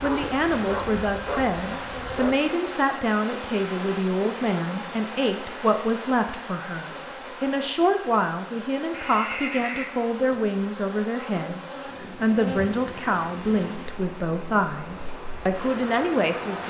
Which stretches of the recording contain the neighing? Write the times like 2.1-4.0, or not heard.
8.9-9.9.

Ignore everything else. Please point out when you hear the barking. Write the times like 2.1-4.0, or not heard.
0.0-2.4.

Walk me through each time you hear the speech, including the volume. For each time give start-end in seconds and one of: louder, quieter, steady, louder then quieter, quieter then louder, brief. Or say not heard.
0.0-16.6 steady.